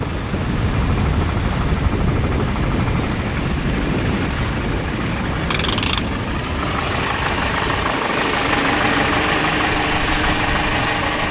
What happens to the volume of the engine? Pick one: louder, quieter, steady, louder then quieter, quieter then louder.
louder.